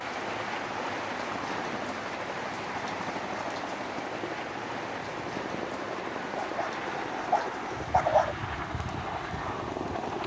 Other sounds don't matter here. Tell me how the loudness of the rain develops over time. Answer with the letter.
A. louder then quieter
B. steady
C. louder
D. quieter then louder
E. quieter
E.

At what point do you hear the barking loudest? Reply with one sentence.
The volume of the barking peaks at 8 seconds.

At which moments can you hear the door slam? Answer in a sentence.
The door slam can't be heard in this clip.